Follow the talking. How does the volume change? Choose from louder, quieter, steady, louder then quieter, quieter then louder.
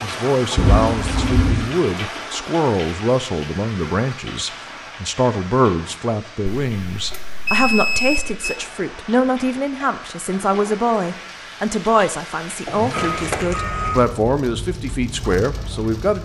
steady.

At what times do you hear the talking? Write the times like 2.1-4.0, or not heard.
0.0-16.1.